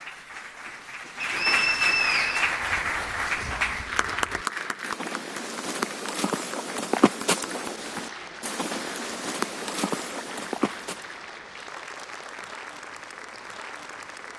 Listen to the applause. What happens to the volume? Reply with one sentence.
The volume of the applause goes down.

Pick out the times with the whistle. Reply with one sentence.
The whistle can be heard from 1.2 to 2.5 s.